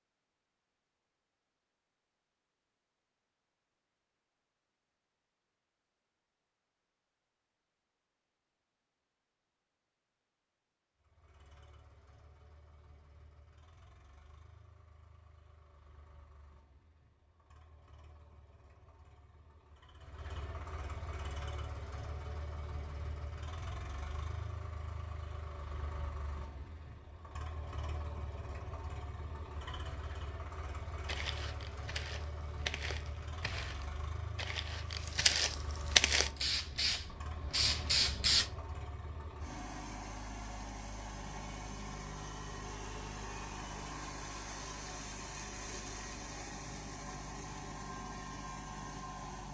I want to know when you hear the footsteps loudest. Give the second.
36 s.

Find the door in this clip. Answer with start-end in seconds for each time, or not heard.
not heard.